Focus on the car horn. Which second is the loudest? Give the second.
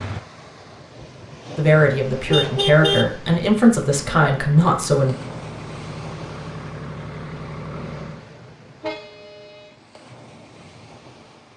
3 s.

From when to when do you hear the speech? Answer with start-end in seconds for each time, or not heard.
1.6-5.2.